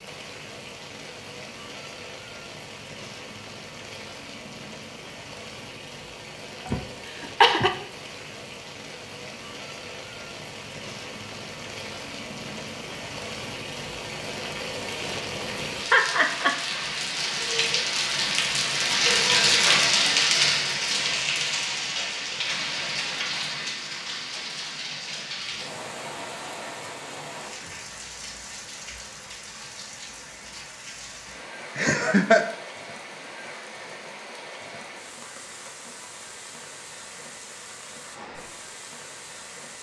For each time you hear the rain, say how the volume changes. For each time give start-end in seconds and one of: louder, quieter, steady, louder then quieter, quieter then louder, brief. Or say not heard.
0.0-39.7 louder then quieter.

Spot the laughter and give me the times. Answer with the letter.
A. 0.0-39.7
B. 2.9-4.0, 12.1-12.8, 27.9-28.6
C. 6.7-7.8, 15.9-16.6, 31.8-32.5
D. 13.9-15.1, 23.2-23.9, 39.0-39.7
C.